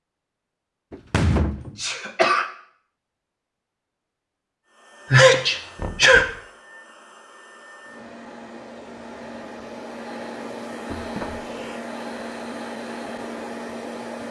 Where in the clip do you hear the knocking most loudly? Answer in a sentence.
The loudest moment of the knocking is at 1 second.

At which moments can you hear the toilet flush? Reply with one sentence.
The toilet flush can't be heard in this clip.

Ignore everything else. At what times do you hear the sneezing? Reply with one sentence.
You can hear the sneezing from 1.8 to 2.5 s, from 5.1 to 6.3 s and from 11.2 to 11.8 s.